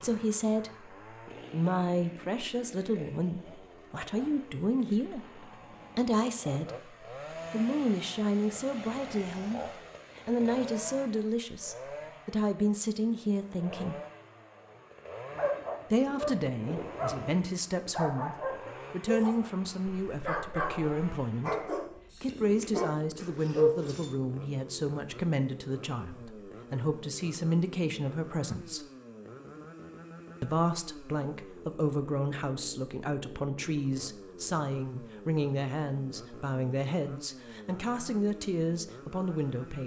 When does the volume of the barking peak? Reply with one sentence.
The volume of the barking peaks at 24 seconds.